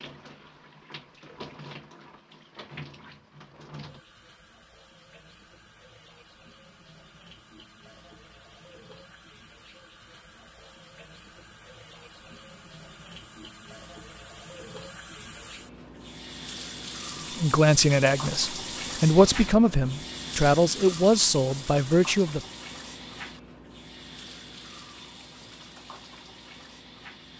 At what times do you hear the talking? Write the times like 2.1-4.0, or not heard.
17.4-22.4.